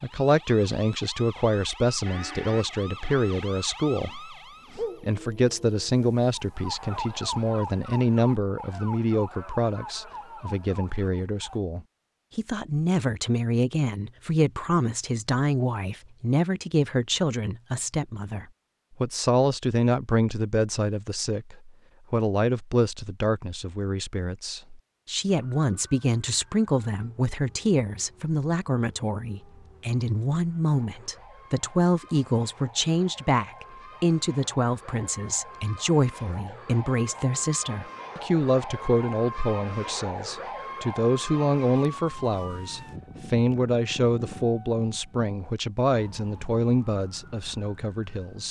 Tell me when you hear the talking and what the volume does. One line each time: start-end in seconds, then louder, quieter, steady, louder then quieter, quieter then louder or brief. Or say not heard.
0.0-48.4 steady.